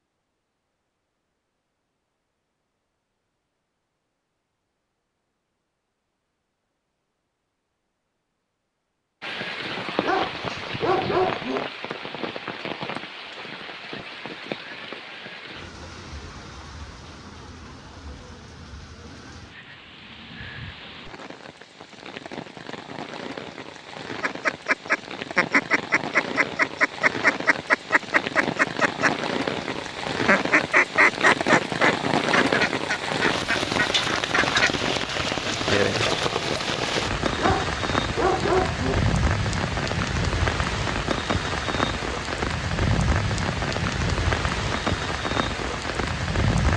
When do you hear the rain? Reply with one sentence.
The rain can be heard from 9.2 to 46.7 s.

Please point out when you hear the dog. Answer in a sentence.
The dog can be heard from 10.0 to 11.7 s and from 37.4 to 39.0 s.